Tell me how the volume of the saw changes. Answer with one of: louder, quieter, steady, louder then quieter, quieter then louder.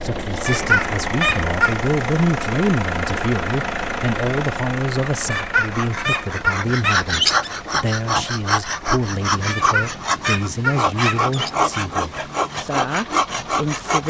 steady.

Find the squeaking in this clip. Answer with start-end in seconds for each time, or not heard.
0.5-1.8, 5.3-7.5, 9.5-11.5.